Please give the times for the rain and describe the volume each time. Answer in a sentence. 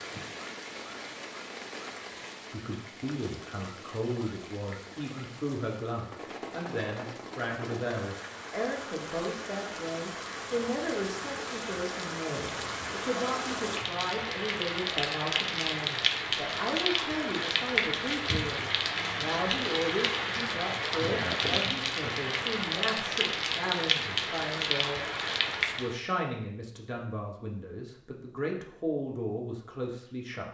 The rain can be heard from 0.0 to 26.0 s, getting louder.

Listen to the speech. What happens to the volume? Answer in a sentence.
The loudness of the speech stays about the same.